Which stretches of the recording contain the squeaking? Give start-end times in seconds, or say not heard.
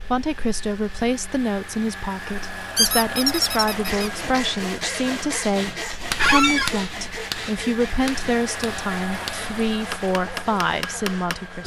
2.8-4.1, 6.2-6.7.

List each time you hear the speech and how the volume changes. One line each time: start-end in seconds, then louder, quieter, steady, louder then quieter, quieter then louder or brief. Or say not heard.
0.0-11.6 steady.